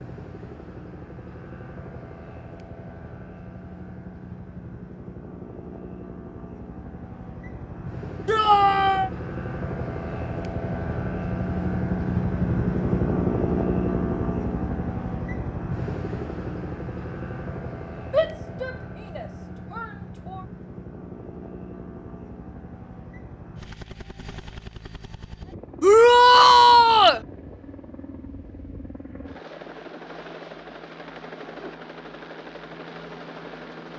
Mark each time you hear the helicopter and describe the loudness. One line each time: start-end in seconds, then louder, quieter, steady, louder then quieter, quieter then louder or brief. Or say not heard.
0.0-33.9 louder then quieter.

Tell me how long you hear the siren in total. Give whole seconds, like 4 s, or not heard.
not heard.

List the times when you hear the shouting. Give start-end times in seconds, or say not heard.
8.2-9.1, 18.1-20.4, 25.8-27.2.